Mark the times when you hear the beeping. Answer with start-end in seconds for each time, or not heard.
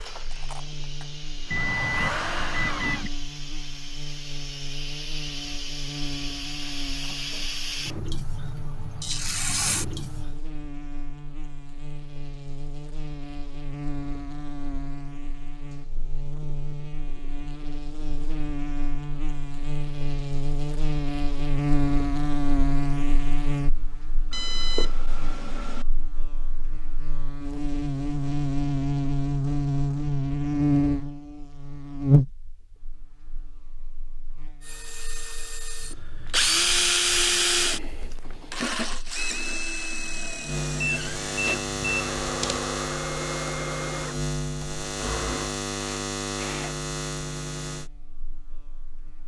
1.5-3.1, 24.3-25.9, 40.8-42.6.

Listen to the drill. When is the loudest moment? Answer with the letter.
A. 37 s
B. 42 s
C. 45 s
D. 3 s
A.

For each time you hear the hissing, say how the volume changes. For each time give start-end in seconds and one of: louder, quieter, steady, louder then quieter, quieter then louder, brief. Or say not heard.
0.0-10.3 louder.